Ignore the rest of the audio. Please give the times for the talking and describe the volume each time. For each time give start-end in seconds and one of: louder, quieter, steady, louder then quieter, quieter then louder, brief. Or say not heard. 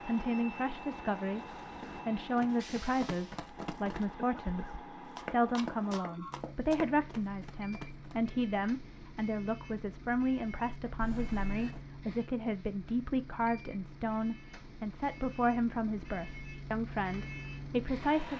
0.1-18.3 steady.